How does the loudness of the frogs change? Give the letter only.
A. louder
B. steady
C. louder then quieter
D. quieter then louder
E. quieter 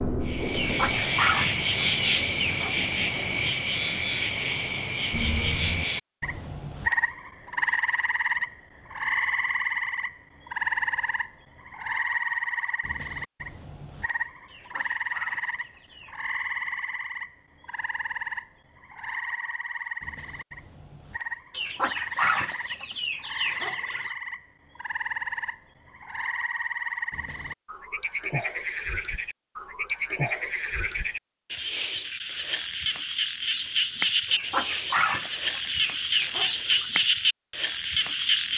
D.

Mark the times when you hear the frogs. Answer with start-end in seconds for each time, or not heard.
0.0-38.5.